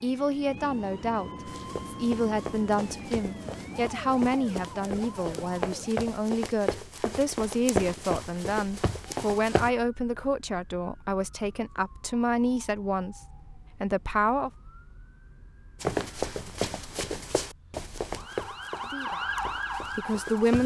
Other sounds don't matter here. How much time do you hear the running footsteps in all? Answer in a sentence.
The running footsteps can be heard for 13 seconds in total.